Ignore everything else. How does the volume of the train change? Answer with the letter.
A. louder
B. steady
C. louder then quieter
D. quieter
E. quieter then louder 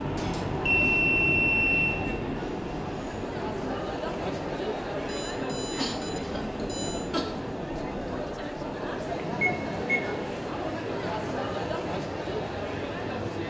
D.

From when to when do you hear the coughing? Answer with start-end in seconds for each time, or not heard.
5.6-7.2.